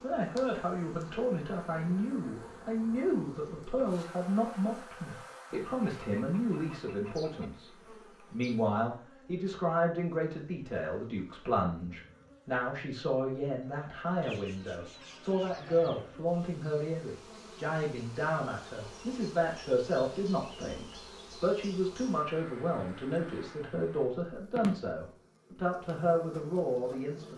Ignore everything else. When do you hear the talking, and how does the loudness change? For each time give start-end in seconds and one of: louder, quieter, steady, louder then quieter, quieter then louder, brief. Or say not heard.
0.0-7.7 steady
8.3-27.3 steady.